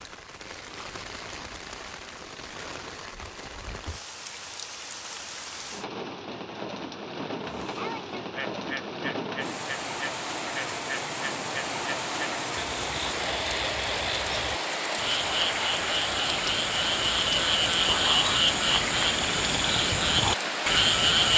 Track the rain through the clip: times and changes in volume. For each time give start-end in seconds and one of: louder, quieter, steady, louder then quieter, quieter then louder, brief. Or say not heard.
0.0-21.3 louder.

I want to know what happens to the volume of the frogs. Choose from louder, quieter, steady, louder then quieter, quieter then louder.
louder.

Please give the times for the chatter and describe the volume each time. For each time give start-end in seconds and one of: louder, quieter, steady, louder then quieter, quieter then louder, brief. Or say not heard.
not heard.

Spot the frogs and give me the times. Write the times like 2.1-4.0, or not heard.
7.4-21.3.